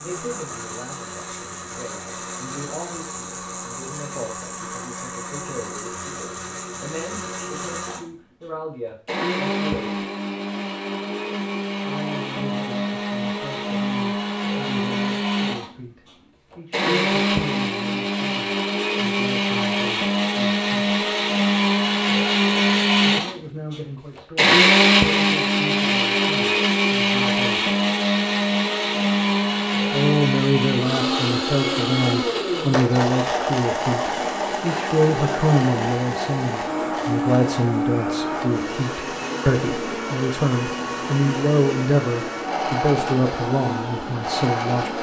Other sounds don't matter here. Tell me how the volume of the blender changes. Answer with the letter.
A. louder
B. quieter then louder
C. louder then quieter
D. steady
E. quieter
C.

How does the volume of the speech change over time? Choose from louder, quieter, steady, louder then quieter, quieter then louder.
louder.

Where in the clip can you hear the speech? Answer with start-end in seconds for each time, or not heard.
0.0-10.0, 11.8-20.9, 23.0-27.6, 29.9-44.9.